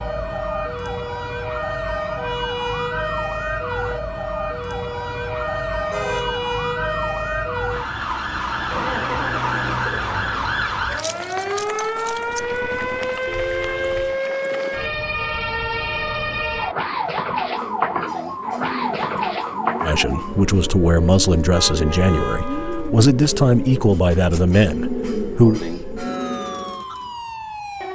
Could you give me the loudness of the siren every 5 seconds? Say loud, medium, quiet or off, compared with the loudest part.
loud, loud, loud, loud, medium, medium.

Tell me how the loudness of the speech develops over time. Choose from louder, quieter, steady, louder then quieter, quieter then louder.
steady.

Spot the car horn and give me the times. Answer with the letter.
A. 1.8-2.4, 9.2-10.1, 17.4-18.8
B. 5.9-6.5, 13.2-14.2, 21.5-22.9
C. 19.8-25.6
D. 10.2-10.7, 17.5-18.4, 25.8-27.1
B.